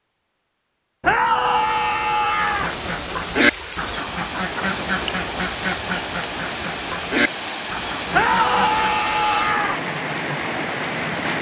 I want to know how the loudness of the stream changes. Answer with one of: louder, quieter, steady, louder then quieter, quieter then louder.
louder.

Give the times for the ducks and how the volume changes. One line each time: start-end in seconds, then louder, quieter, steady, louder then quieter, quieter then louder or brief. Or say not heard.
2.4-8.8 quieter.